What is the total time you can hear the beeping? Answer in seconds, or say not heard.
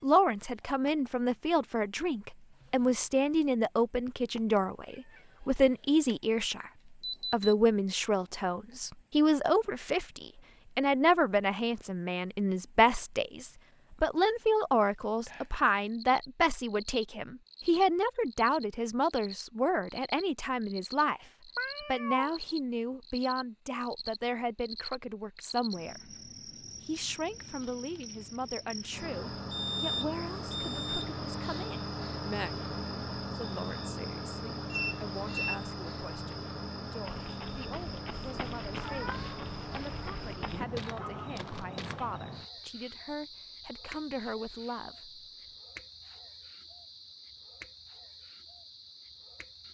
3 s.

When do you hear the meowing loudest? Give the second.
22 s.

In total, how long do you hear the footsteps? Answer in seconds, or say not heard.
5 s.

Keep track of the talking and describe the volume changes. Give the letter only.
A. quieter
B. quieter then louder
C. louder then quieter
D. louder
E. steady
A.